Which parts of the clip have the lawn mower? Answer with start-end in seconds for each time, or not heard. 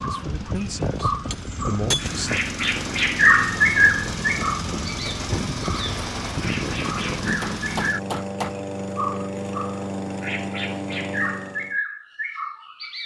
0.0-11.8.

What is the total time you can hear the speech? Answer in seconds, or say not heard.
2 s.